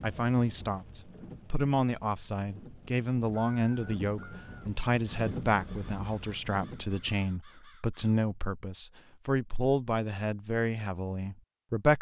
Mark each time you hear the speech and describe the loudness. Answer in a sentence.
You can hear the speech from 0.0 to 11.9 s, at a steady volume.